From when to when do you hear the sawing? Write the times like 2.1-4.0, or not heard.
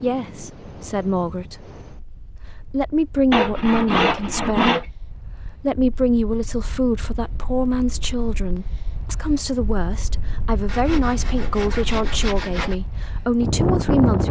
3.3-4.8, 10.7-12.8.